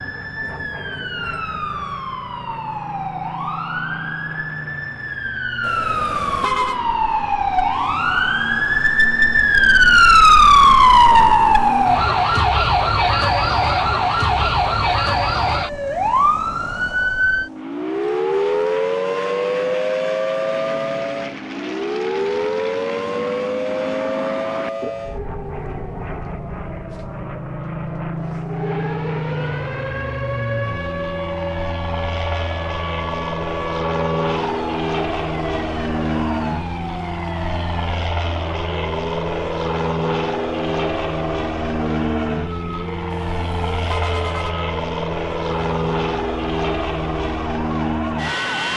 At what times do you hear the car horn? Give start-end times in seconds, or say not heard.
5.6-6.8, 43.1-44.5.